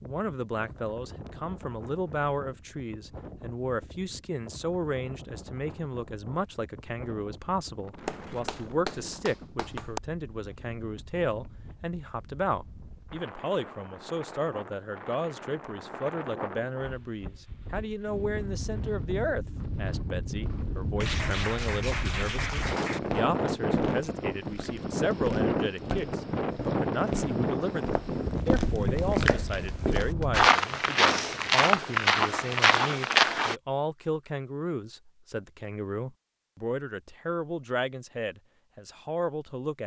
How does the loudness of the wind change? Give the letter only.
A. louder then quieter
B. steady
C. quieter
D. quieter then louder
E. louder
E.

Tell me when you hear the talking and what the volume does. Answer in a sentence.
The talking can be heard from 0.0 to 39.8 s, at a steady volume.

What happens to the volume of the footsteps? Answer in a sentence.
The volume of the footsteps goes up.